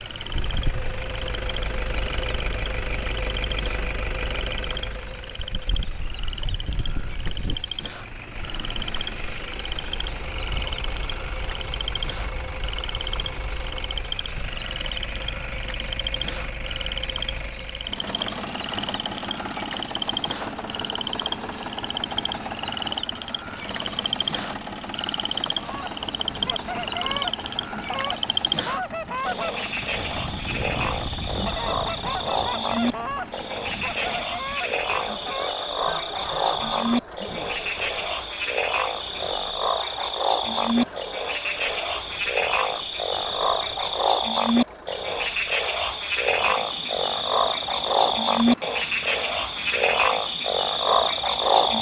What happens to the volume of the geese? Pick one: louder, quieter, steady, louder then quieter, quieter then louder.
steady.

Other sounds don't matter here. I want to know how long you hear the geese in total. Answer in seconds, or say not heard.
12 s.